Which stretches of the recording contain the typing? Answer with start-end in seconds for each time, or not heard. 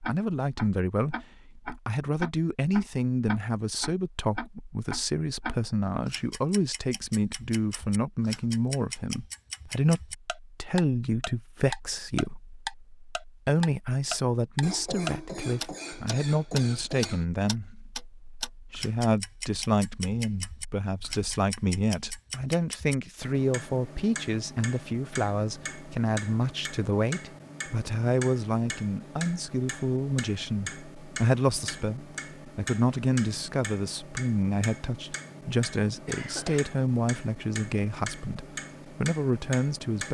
not heard.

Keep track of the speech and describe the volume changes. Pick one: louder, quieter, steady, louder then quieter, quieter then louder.
steady.